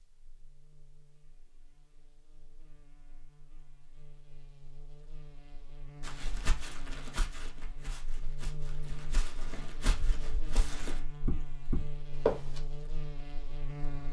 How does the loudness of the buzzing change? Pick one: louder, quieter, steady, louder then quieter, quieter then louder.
louder.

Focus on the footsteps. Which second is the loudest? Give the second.
12 s.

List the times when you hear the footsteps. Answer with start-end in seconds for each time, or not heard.
6.0-12.6.